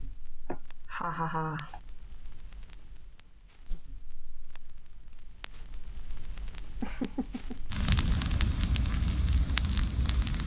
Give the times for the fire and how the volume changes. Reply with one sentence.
You can hear the fire from 0.0 to 10.4 s, getting louder.